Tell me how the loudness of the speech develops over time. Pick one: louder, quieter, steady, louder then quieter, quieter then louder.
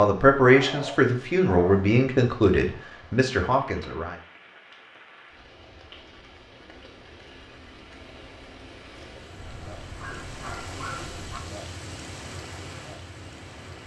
quieter.